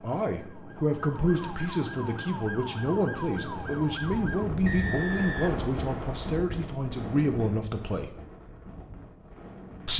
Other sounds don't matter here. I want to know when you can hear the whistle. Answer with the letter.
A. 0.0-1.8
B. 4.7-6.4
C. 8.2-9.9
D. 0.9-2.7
B.